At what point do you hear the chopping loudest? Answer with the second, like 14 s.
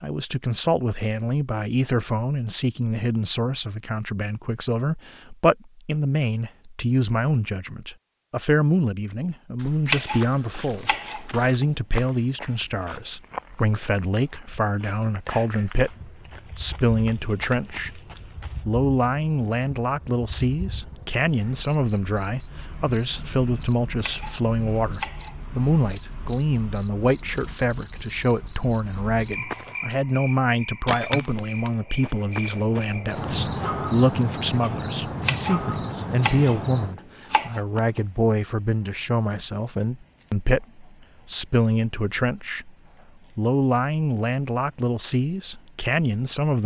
10 s.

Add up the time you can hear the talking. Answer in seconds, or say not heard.
45 s.